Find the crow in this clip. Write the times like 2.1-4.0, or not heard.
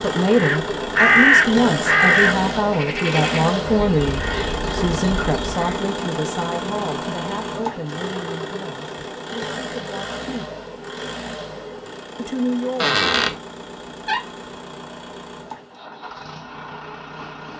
0.3-5.8.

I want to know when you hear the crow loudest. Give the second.
1 s.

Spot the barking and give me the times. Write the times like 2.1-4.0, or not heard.
not heard.